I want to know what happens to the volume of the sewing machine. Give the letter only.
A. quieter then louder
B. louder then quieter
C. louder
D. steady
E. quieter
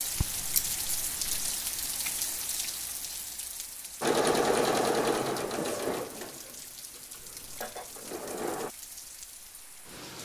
A.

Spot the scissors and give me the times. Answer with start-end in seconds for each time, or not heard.
0.1-1.6, 7.3-7.8.